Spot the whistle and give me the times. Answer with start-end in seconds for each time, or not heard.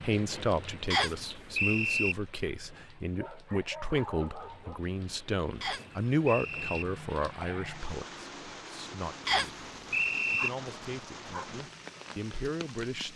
0.9-2.1, 5.6-6.8, 9.2-10.5.